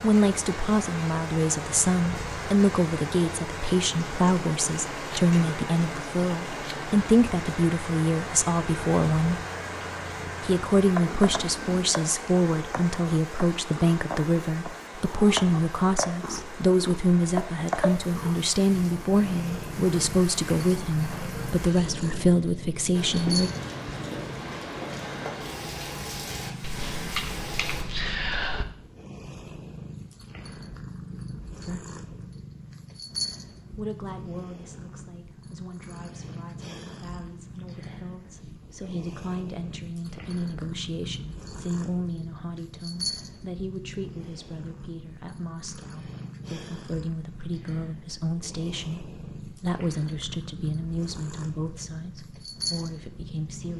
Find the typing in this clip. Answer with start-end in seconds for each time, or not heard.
26.6-28.6.